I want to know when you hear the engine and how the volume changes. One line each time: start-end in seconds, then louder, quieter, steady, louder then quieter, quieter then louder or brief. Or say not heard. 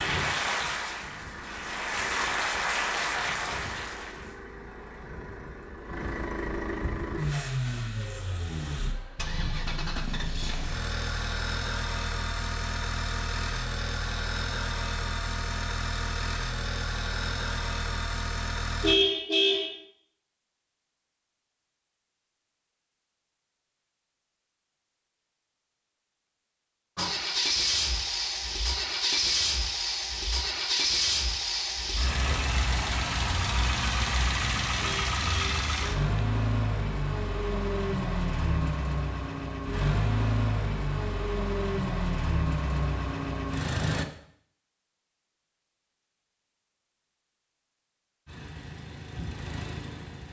0.0-18.9 louder
26.9-44.0 steady
48.2-50.2 brief.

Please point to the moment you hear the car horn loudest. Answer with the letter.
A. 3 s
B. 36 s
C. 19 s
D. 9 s
C.